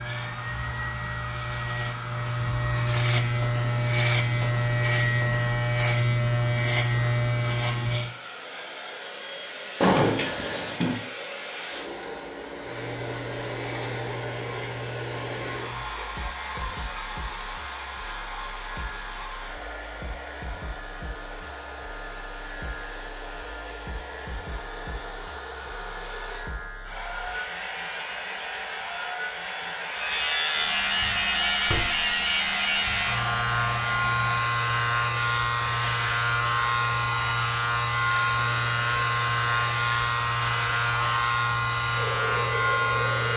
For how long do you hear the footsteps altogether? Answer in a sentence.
The footsteps can't be heard in this clip.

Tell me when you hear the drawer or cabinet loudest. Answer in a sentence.
The loudest moment of the drawer or cabinet is at 10 seconds.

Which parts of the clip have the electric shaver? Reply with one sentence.
The electric shaver can be heard from 0.0 to 8.2 s and from 12.6 to 43.3 s.